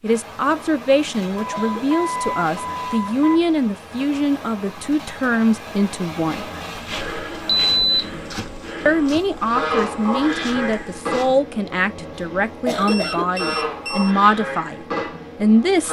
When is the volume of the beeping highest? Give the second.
8 s.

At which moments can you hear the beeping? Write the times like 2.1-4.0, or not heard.
1.4-3.4, 7.5-8.3, 12.8-14.2.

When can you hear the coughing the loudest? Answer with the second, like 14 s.
13 s.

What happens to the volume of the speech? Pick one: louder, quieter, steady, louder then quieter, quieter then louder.
steady.